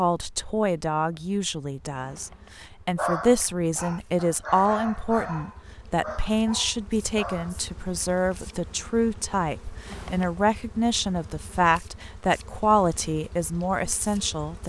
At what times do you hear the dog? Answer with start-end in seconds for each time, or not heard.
3.0-7.6.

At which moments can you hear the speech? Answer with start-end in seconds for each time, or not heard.
0.0-14.6.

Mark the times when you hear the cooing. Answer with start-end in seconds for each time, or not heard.
not heard.